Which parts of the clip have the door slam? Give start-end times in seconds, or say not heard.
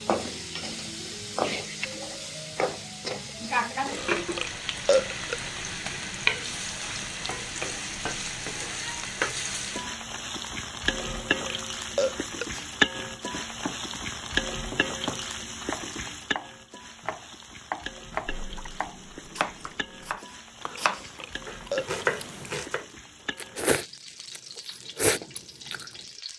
not heard.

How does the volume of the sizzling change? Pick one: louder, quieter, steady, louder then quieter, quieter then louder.
quieter.